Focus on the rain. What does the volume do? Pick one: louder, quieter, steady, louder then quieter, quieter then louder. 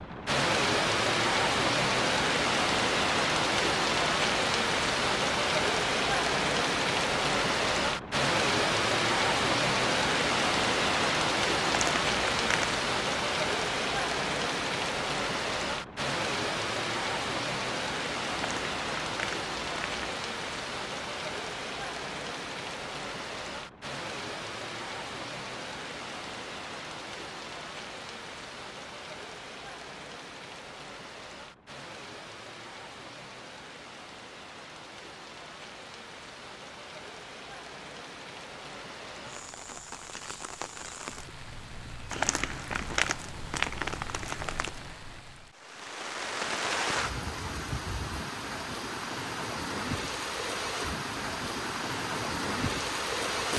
quieter then louder.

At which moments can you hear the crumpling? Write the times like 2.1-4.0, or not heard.
11.7-12.8, 18.4-20.0, 42.1-44.8.